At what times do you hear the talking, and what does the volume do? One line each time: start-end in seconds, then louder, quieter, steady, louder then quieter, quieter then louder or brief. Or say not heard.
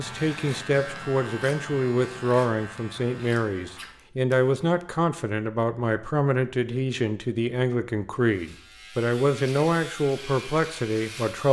0.0-11.4 steady.